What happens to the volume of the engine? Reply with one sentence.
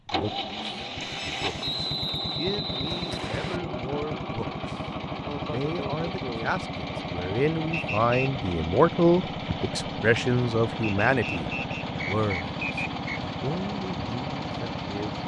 The volume of the engine stays about the same.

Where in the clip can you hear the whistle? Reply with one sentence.
The whistle can be heard from 1.6 to 3.6 s, from 7.7 to 8.3 s and from 10.8 to 13.2 s.